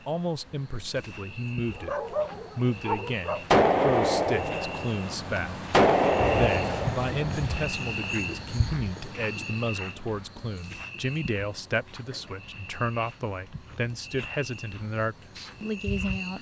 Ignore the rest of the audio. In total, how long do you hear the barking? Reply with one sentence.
The barking can be heard for 2 seconds in total.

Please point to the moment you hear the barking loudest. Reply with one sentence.
The loudest moment of the barking is at 2 seconds.